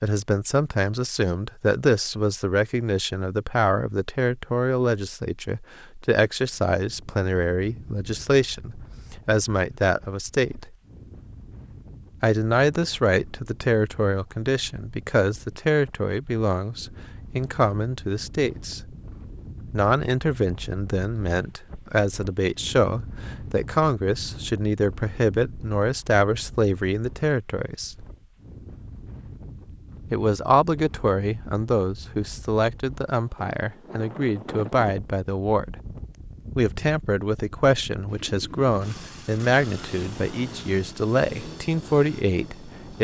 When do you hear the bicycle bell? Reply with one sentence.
The bicycle bell can't be heard in this clip.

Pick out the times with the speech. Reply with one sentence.
The speech can be heard from 0.0 to 10.8 s, from 12.2 to 18.8 s, from 19.7 to 28.1 s, from 30.1 to 35.8 s and from 36.5 to 43.0 s.